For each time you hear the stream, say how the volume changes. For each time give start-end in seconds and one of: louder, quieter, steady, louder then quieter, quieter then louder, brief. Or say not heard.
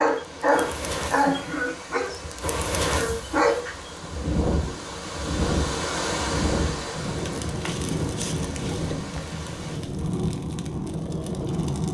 0.0-9.8 louder then quieter.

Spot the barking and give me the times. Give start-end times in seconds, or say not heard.
0.0-4.0.